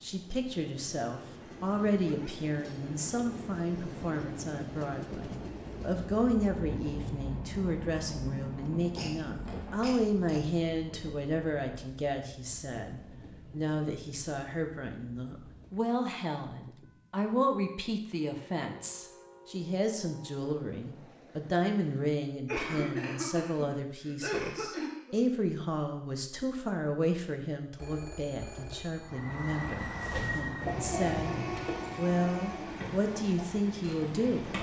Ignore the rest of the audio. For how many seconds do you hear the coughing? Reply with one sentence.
You can hear the coughing for 4 seconds altogether.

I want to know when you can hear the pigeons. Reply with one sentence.
The pigeons can be heard from 29.6 to 34.5 s.